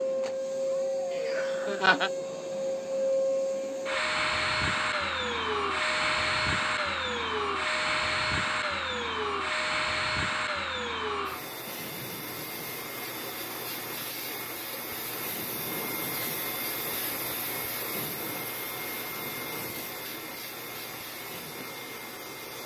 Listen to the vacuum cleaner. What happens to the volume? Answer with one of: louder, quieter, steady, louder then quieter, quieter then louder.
quieter.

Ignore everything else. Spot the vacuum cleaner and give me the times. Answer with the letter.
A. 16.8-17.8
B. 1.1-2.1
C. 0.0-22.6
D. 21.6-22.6
C.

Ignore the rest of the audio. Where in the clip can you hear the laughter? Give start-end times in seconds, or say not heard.
1.1-2.1.